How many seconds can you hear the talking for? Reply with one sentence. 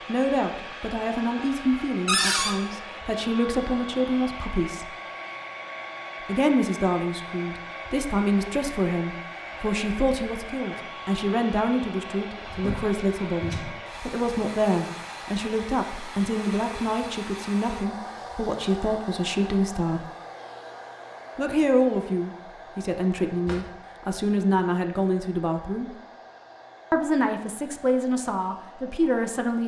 You can hear the talking for 26 seconds altogether.